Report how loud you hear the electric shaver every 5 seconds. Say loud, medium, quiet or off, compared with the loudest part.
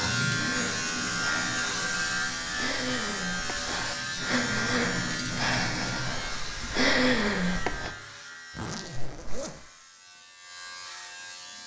loud, medium, quiet.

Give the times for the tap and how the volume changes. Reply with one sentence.
The tap can be heard from 0.0 to 6.2 s, getting quieter then louder.